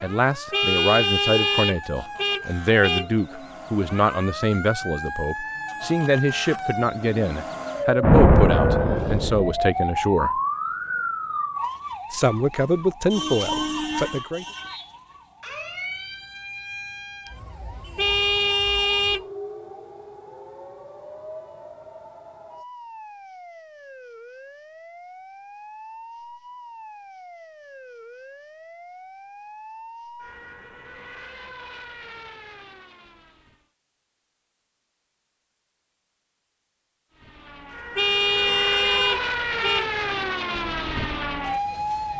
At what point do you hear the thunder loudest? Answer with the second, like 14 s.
8 s.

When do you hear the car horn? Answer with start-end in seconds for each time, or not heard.
0.5-3.1, 17.9-19.2, 38.0-39.9.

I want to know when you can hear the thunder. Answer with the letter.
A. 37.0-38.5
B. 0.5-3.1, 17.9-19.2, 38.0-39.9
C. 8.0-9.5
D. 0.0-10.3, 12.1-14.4
C.